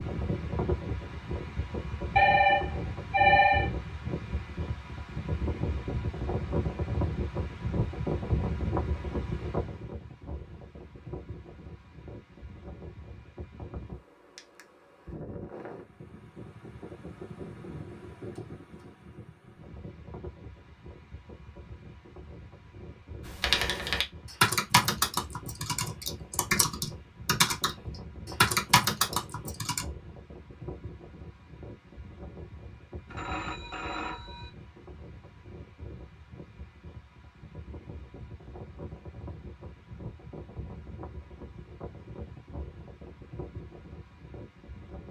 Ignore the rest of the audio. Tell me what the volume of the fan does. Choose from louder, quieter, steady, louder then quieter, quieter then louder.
quieter.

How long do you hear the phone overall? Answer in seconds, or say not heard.
3 s.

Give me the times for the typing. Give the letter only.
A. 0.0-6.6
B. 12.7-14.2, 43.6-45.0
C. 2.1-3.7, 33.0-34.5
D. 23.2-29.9
D.